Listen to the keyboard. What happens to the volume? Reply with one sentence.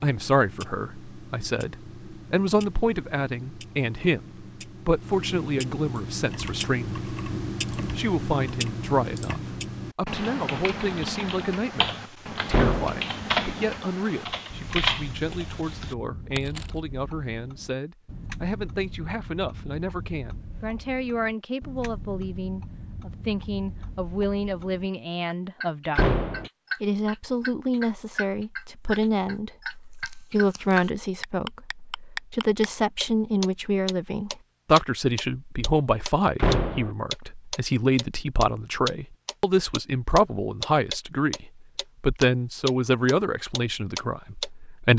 The volume of the keyboard goes up.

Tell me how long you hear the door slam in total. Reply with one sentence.
You can hear the door slam for 2 seconds altogether.